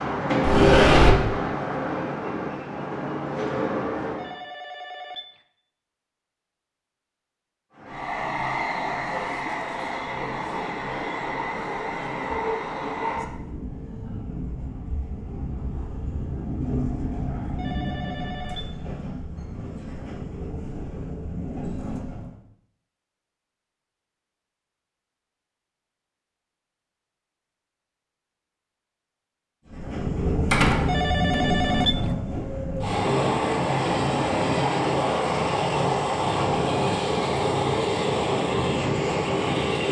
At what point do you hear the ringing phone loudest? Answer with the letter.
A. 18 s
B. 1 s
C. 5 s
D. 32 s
D.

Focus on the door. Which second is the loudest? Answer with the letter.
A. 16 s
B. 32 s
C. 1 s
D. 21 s
C.